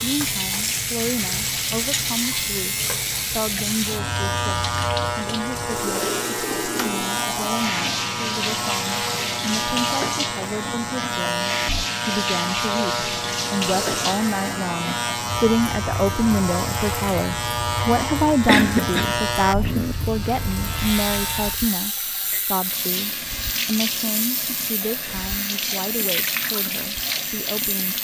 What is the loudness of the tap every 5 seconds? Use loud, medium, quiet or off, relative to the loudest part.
loud, loud, loud, medium, loud, loud.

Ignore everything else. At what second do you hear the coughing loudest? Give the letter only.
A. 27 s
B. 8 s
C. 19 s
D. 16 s
C.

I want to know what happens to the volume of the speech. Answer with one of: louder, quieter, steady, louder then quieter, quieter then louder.
louder then quieter.